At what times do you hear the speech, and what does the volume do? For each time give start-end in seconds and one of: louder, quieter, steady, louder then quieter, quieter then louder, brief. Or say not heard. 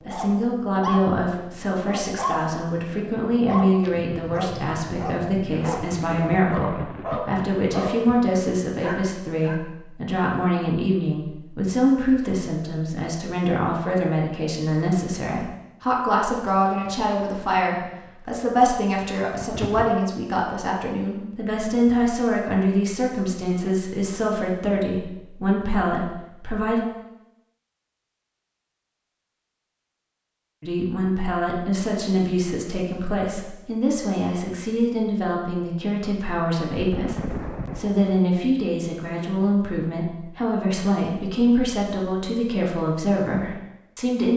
0.1-26.8 steady
30.6-44.3 steady.